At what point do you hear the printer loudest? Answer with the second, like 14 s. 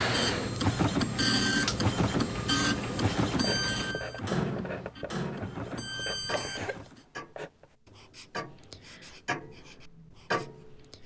1 s.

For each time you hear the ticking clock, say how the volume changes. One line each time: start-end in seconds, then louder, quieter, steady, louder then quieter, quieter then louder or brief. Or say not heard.
0.0-11.0 quieter then louder.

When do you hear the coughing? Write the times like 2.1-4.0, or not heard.
6.0-6.9.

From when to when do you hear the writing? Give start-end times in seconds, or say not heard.
3.2-11.0.